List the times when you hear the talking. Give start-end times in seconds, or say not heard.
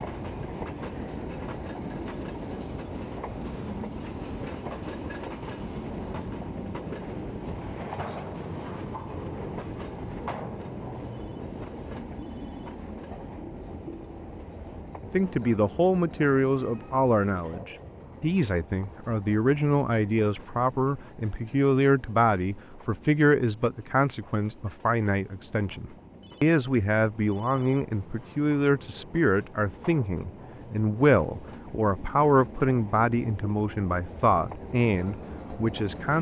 15.0-36.1.